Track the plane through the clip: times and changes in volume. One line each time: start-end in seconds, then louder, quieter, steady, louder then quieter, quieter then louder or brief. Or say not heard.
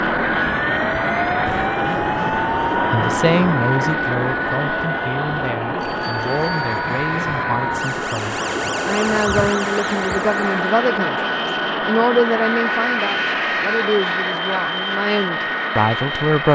0.0-16.4 steady.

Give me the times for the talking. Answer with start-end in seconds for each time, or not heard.
2.9-11.2, 11.8-16.4.